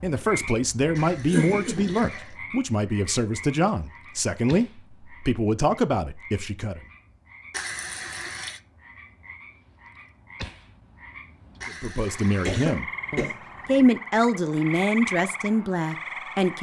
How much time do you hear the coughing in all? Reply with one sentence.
The coughing can be heard for 2 seconds in total.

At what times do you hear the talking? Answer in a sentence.
The talking can be heard from 0.0 to 6.8 s and from 11.7 to 16.5 s.